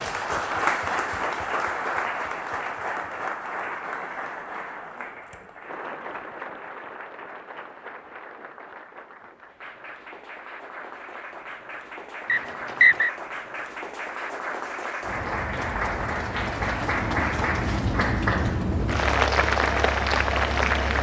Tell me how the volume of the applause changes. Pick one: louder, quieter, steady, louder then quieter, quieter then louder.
quieter then louder.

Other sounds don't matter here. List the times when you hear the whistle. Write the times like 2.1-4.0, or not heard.
12.2-13.1.